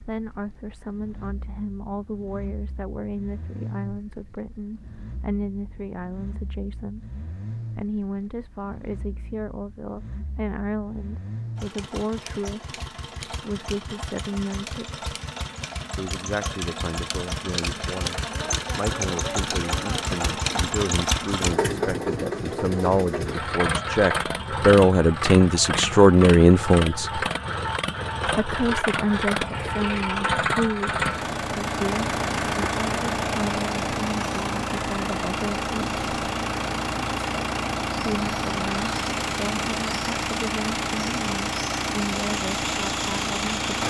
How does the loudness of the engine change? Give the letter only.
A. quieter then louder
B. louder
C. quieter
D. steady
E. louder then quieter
B.